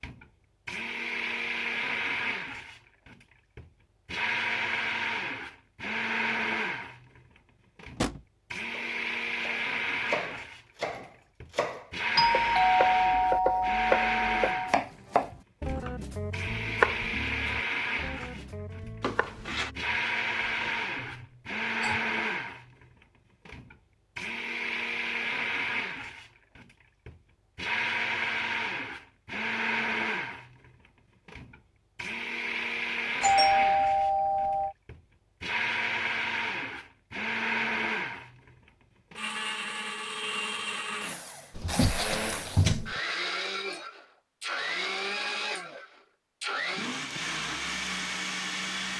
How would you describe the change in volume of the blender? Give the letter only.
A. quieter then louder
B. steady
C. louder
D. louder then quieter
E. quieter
B.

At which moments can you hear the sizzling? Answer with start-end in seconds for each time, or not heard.
not heard.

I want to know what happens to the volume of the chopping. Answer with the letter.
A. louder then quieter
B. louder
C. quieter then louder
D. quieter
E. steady
A.